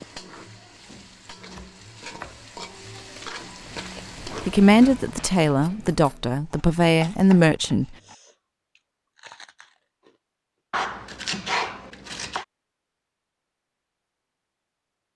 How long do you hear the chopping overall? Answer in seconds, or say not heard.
5 s.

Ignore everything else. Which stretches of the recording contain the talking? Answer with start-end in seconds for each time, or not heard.
4.5-8.0.